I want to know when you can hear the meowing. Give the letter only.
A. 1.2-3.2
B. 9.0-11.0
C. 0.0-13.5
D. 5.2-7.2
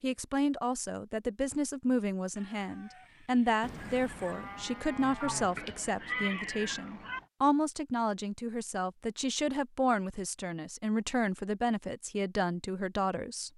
D.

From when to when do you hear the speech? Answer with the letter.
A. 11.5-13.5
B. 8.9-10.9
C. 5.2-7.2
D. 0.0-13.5
D.